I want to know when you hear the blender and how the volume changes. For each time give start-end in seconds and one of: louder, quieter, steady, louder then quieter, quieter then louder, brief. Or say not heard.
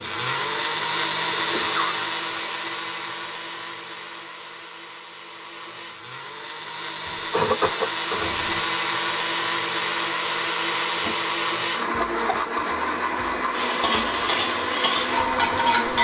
0.0-16.0 quieter then louder.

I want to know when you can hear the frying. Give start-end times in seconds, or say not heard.
13.5-16.0.